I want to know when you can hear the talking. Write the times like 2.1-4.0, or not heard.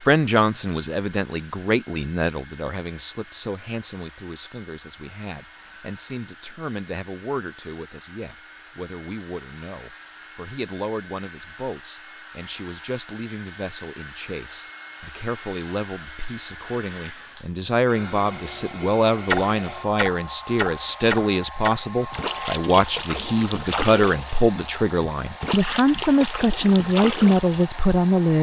0.0-28.3.